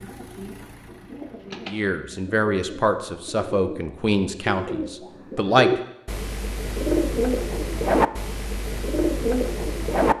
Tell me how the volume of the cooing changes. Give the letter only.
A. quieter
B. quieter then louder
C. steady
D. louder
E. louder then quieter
D.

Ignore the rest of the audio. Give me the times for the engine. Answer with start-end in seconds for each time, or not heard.
0.0-1.7.